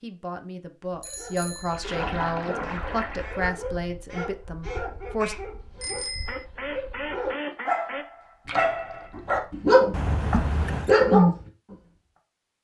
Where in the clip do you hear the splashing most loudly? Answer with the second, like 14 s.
2 s.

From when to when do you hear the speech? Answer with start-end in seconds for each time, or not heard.
0.0-5.3.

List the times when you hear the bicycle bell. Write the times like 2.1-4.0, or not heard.
1.0-1.9, 5.8-6.5, 9.9-10.9.